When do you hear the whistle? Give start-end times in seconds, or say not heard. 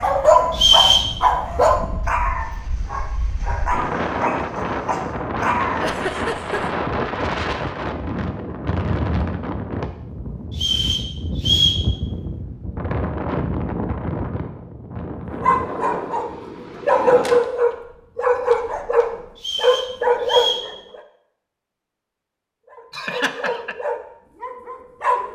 0.5-1.1, 10.5-11.8, 19.4-20.6.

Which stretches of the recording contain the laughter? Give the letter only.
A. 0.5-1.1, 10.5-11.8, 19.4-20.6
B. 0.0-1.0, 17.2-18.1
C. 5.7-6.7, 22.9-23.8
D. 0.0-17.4
C.